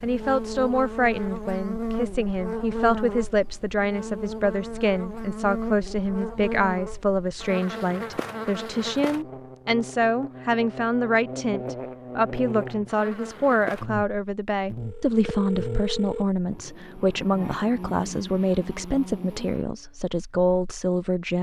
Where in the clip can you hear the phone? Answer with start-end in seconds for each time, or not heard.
14.8-16.2.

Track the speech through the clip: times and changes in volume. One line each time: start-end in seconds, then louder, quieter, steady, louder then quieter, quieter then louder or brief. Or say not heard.
0.0-21.3 steady.